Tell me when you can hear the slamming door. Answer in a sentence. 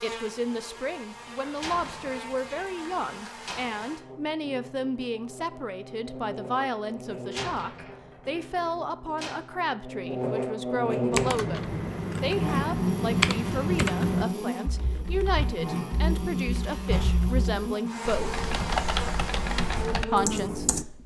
You can hear the slamming door from 1.6 to 3.8 s, from 7.3 to 9.4 s and from 16.9 to 17.3 s.